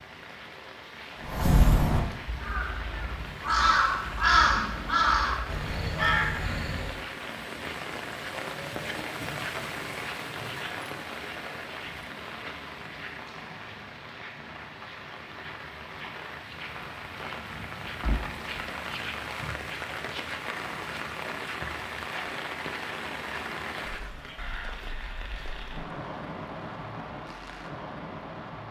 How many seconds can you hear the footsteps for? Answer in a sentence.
The footsteps can't be heard in this clip.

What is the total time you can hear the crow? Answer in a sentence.
You can hear the crow for 6 seconds altogether.